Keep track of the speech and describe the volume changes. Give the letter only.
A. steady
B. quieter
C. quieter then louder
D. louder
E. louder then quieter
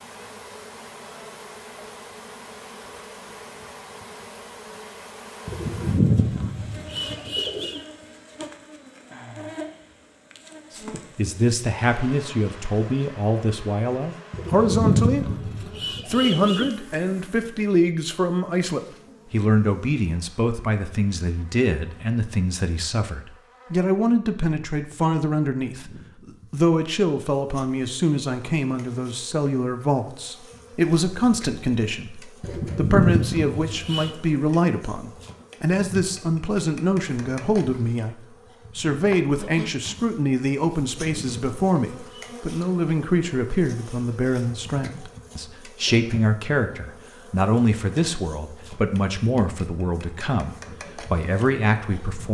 A.